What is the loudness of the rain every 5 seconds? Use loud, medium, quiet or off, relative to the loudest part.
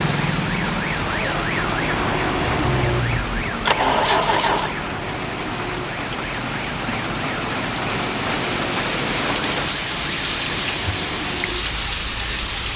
medium, loud, loud.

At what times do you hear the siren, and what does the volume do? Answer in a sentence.
The siren can be heard from 0.1 to 12.7 s, getting quieter.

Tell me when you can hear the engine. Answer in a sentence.
You can hear the engine from 2.4 to 4.8 s.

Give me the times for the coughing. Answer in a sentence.
The coughing can't be heard in this clip.